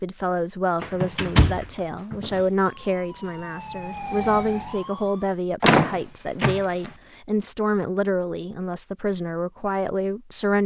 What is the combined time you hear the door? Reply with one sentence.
The door can be heard for 3 seconds in total.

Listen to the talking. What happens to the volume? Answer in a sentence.
The volume of the talking stays about the same.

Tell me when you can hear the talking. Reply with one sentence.
The talking can be heard from 0.0 to 10.6 s.